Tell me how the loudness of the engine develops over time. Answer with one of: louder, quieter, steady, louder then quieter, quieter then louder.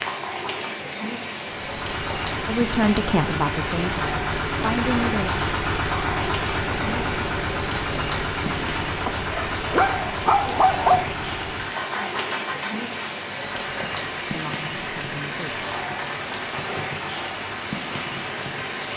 quieter.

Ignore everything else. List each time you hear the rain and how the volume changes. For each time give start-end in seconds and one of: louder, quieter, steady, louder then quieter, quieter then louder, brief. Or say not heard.
0.0-18.9 steady.